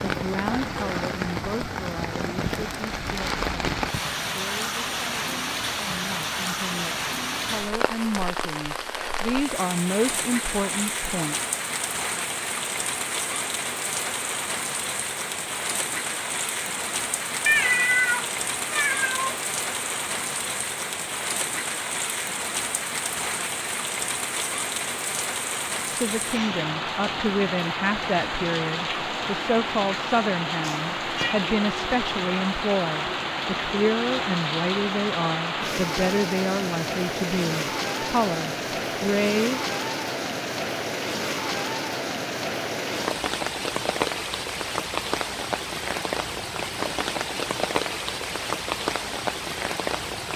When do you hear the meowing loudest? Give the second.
18 s.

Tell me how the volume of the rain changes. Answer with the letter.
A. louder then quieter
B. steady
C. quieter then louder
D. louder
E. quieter
B.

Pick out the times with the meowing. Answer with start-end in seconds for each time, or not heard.
17.4-19.4, 30.6-31.4.